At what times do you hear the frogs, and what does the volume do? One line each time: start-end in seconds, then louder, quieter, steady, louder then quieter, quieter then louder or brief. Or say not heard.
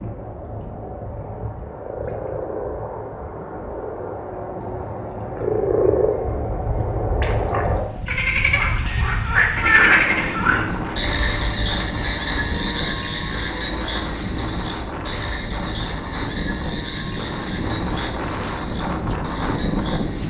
0.0-20.2 louder then quieter.